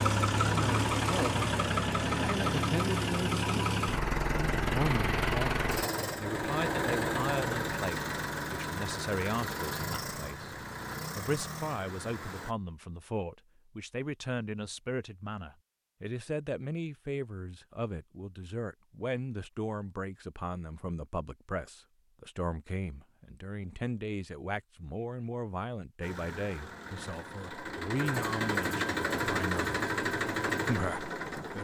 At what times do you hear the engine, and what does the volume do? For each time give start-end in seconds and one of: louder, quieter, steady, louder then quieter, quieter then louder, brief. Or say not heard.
0.0-12.6 quieter
26.0-31.5 louder.